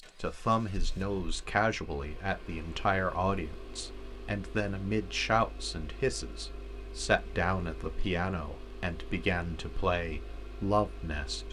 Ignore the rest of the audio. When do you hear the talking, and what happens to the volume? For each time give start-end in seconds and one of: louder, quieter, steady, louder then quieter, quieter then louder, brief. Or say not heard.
0.2-11.4 steady.